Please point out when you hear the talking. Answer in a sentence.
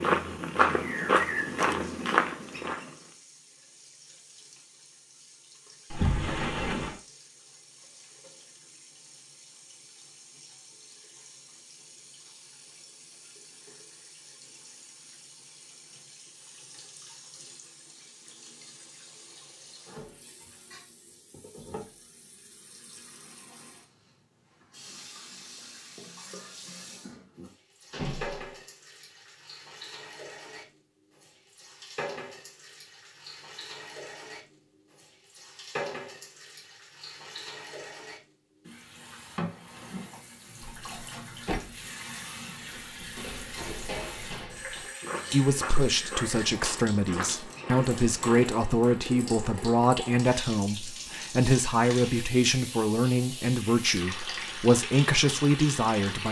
You can hear the talking from 45.3 to 56.2 s.